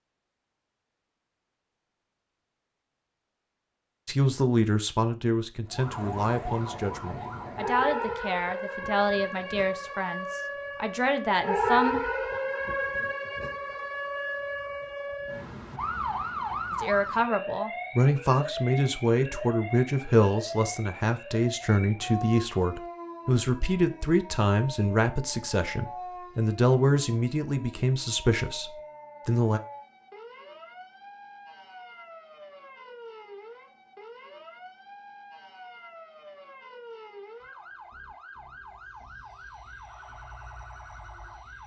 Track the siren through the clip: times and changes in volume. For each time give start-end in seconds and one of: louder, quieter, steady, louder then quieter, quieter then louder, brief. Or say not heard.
5.7-41.6 quieter.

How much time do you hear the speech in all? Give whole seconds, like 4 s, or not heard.
21 s.